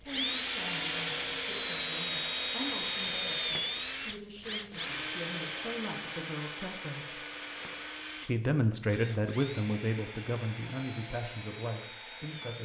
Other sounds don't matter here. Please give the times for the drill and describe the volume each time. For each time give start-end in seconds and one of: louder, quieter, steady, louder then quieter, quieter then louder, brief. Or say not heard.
0.0-12.6 quieter.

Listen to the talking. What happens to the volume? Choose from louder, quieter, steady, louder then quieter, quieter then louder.
louder then quieter.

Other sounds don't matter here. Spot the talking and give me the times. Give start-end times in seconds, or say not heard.
0.0-7.2, 8.2-12.6.